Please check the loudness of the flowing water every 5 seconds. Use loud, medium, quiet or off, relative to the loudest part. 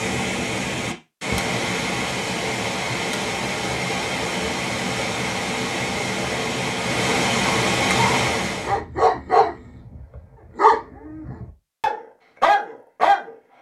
loud, loud, off.